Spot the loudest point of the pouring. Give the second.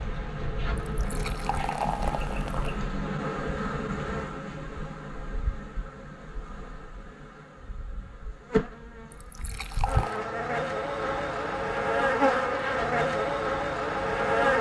2 s.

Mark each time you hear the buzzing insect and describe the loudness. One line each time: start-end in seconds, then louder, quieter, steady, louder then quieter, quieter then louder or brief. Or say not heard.
0.0-14.5 louder.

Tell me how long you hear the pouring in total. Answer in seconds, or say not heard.
3 s.